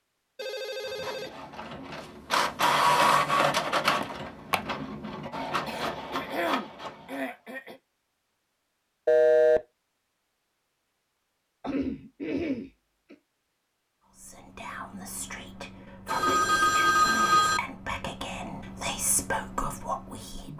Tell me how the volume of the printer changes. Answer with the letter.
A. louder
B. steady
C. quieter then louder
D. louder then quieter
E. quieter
D.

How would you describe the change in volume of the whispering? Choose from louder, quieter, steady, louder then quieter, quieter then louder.
louder.